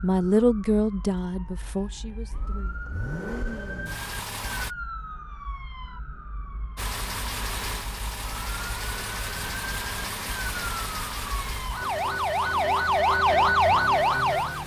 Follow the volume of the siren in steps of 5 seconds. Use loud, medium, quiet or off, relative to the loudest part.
quiet, quiet, loud.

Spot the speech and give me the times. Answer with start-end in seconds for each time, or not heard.
0.0-2.9.